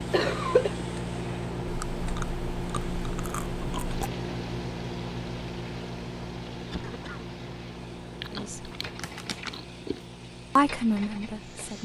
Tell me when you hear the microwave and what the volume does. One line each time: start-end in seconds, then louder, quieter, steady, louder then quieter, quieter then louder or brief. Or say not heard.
0.0-11.8 quieter.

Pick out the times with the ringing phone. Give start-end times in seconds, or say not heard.
not heard.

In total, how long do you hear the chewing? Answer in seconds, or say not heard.
4 s.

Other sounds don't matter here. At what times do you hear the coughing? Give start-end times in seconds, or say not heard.
0.1-0.8, 6.7-7.2.